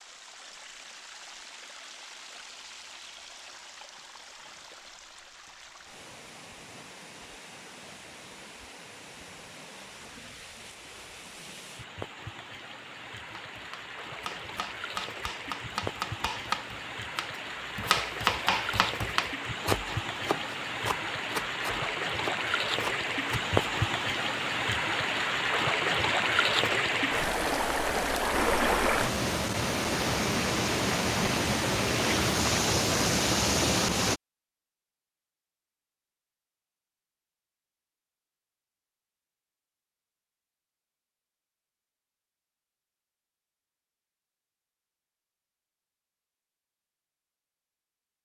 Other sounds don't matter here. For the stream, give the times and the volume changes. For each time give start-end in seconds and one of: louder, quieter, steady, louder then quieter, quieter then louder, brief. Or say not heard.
0.0-34.2 louder.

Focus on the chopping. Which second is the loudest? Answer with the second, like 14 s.
18 s.